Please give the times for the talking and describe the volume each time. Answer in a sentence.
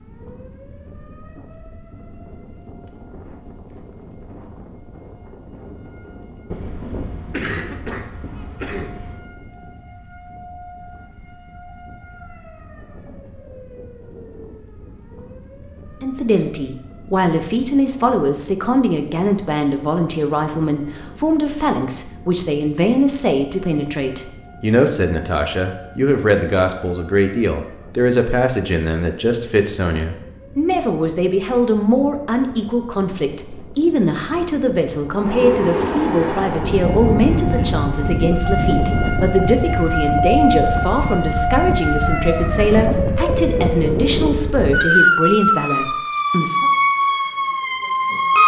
You can hear the talking from 16.0 to 46.7 s, at a steady volume.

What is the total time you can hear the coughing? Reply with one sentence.
You can hear the coughing for 3 seconds altogether.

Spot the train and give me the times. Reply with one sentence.
The train can be heard from 35.1 to 38.1 s.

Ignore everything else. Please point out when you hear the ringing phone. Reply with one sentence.
The ringing phone can't be heard in this clip.